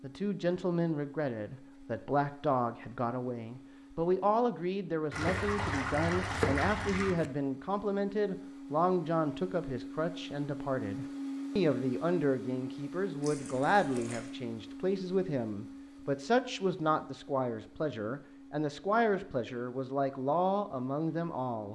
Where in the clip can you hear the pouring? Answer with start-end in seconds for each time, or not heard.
5.1-7.2, 13.2-14.3.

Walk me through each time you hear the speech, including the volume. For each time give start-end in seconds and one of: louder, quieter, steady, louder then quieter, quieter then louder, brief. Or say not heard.
0.0-21.7 steady.